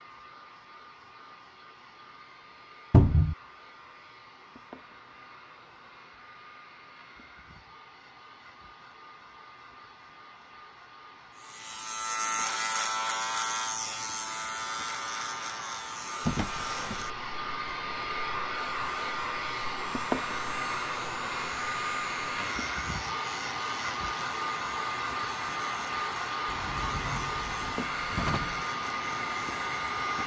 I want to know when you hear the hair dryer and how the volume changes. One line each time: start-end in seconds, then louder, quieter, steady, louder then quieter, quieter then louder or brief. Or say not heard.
0.0-30.2 louder.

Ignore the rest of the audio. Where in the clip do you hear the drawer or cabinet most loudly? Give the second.
3 s.